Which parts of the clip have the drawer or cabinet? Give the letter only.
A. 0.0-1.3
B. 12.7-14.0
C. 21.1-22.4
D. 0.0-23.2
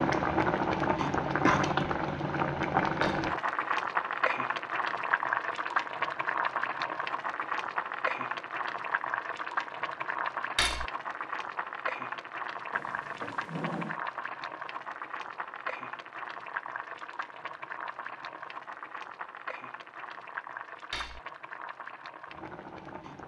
B.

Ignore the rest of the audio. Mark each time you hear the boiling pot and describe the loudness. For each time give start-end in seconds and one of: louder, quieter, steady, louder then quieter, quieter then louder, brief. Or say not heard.
0.0-23.2 quieter.